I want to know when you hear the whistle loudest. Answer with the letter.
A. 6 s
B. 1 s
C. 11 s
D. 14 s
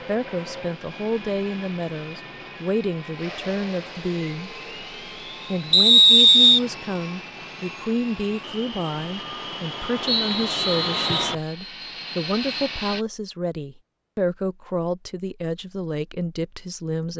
A.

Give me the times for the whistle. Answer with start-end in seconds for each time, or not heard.
5.7-6.6, 10.1-11.3.